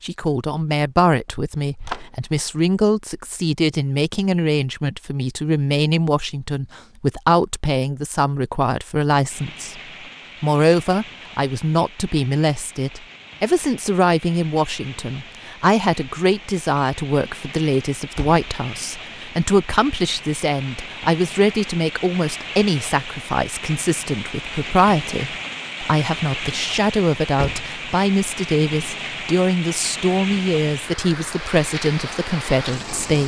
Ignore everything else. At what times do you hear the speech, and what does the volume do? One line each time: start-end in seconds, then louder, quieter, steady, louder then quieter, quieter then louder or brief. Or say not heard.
0.0-9.8 steady
10.4-33.2 steady.